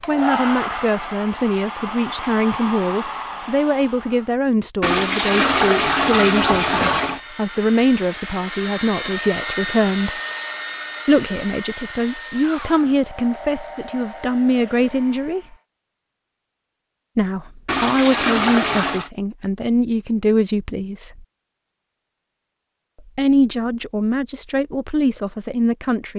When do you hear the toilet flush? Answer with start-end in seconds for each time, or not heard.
4.8-7.2, 17.6-19.1.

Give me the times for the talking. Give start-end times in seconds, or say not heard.
0.1-10.2, 11.1-15.6, 17.1-21.2, 23.1-26.1.